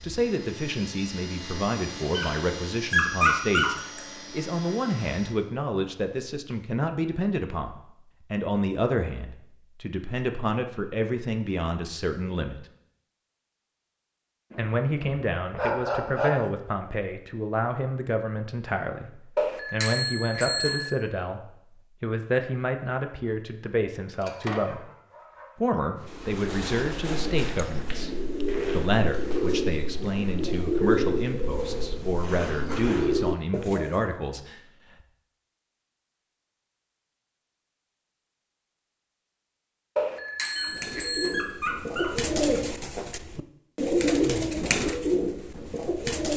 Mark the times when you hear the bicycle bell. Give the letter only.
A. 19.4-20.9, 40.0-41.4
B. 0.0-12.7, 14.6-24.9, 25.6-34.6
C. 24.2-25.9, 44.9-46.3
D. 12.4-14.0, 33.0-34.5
A.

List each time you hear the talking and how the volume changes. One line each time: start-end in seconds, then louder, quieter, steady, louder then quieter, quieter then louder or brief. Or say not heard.
0.0-12.7 steady
14.6-24.9 steady
25.6-34.6 steady.